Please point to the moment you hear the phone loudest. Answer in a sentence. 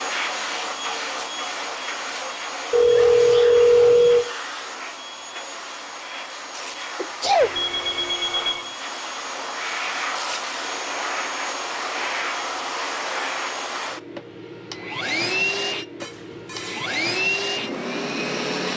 The volume of the phone peaks at 4 seconds.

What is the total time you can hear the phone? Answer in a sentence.
The phone can be heard for 4 seconds in total.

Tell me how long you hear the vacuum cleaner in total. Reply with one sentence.
The vacuum cleaner can be heard for 19 seconds in total.